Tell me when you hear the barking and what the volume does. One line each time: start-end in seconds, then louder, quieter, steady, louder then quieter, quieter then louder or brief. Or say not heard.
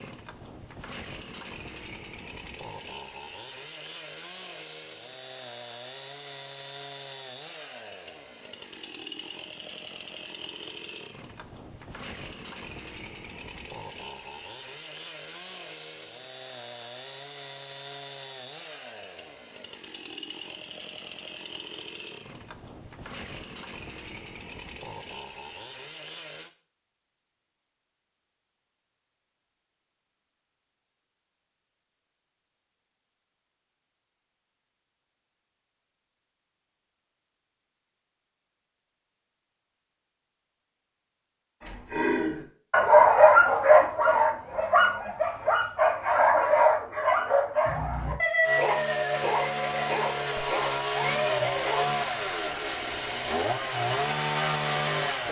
41.6-51.9 quieter.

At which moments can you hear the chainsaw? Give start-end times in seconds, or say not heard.
0.0-26.5, 48.4-55.2.